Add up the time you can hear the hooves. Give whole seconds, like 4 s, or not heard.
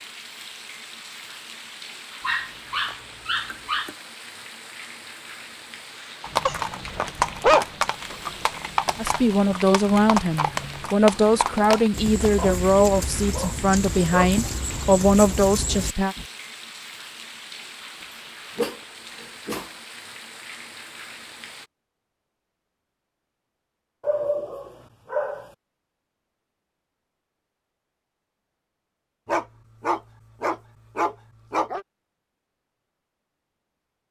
10 s.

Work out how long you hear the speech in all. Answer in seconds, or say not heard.
7 s.